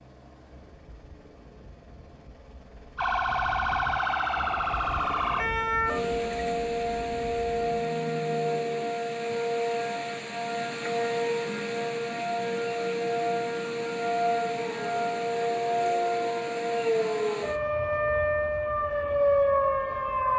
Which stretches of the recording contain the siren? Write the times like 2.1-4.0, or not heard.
3.0-20.3.